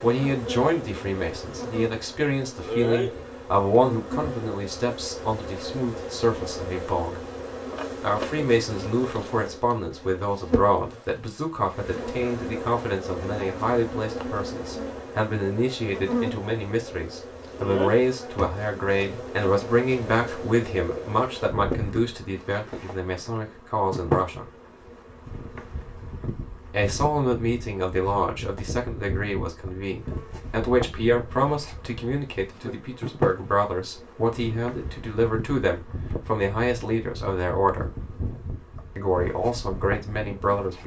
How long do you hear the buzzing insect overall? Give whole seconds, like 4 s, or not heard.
41 s.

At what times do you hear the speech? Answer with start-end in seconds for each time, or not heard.
0.0-7.2, 8.0-24.4, 26.7-37.9, 39.0-40.8.